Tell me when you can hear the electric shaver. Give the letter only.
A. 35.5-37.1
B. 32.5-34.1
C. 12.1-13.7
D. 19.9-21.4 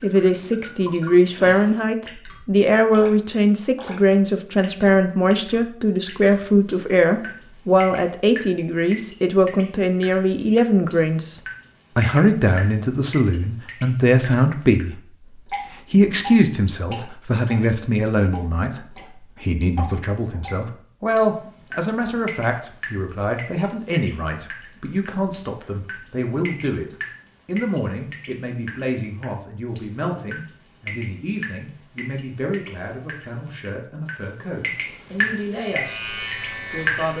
A.